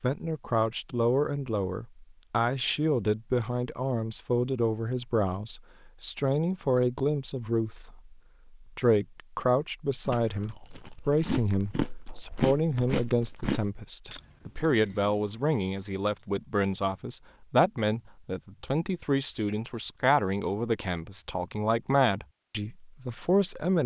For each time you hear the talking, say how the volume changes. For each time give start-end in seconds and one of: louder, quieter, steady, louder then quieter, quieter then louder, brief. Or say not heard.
0.0-23.8 steady.